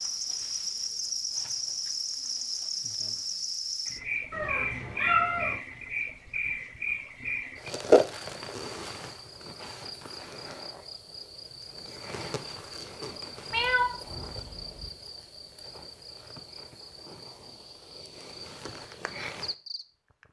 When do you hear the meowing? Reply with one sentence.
The meowing can be heard from 4.3 to 5.6 s and from 13.5 to 14.9 s.